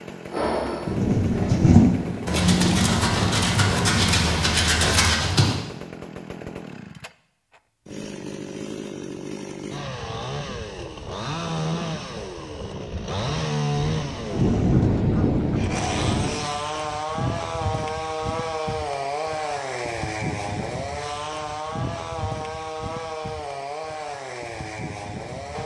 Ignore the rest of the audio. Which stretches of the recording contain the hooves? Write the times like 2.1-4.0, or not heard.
0.3-5.5.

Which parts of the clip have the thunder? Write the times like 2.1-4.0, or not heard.
0.8-4.0, 13.8-16.3.